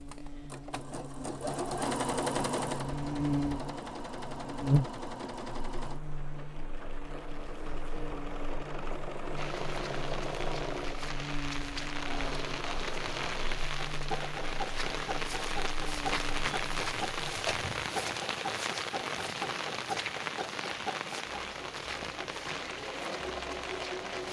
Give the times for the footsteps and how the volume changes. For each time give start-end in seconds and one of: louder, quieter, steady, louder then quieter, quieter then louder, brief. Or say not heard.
not heard.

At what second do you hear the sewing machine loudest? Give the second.
2 s.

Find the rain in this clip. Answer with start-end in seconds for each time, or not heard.
9.3-24.2.